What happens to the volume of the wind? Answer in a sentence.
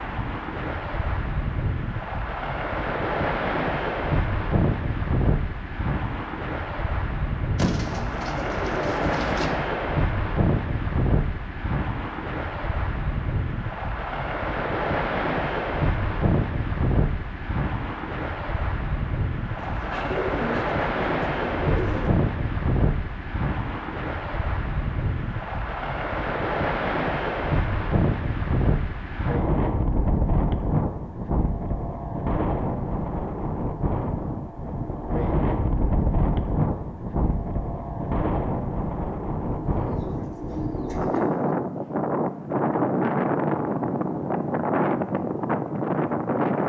The loudness of the wind stays about the same.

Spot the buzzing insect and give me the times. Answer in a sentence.
The buzzing insect can't be heard in this clip.